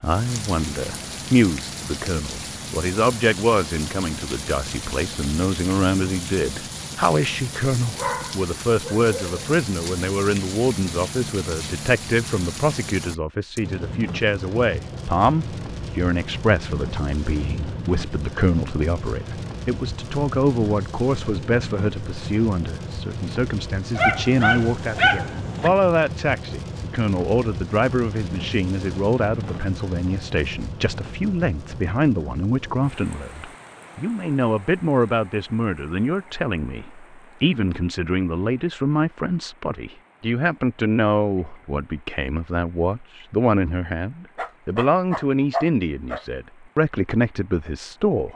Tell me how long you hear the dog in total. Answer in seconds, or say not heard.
5 s.